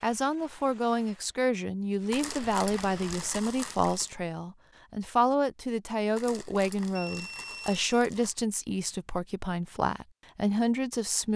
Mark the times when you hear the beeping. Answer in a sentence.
You can hear the beeping from 7.0 to 7.8 s.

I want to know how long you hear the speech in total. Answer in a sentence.
The speech can be heard for 11 seconds in total.